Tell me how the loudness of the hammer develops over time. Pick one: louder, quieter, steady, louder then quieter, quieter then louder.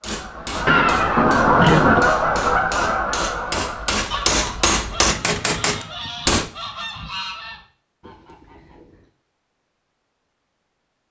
louder.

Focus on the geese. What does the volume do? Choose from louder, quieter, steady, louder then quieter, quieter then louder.
quieter.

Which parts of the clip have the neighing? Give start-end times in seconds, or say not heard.
0.7-2.1.